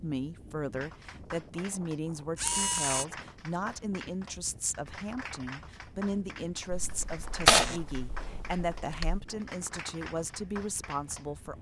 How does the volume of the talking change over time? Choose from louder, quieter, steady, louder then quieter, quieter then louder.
steady.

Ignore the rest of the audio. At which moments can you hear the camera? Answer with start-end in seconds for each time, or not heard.
2.4-3.0, 6.7-9.2.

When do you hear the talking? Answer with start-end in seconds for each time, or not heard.
0.0-11.5.